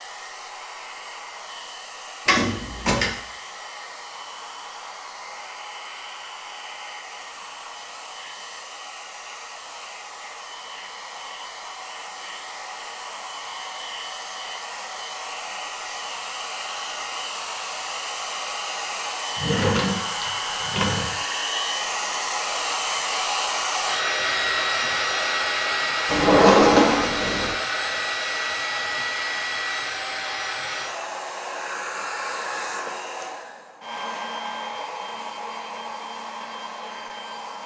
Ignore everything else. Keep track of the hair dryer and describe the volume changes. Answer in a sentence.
The loudness of the hair dryer goes up, then down.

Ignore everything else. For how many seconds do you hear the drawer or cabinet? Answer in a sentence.
The drawer or cabinet can be heard for 4 seconds in total.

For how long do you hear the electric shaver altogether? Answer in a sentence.
The electric shaver can't be heard in this clip.